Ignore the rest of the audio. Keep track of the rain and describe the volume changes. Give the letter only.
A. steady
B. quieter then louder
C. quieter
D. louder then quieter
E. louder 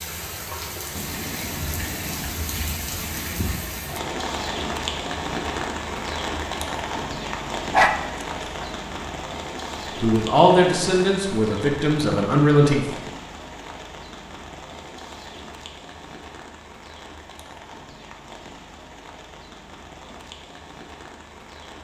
C.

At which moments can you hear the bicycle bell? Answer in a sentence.
You can't hear the bicycle bell here.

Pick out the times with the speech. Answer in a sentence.
You can hear the speech from 10.0 to 13.0 s.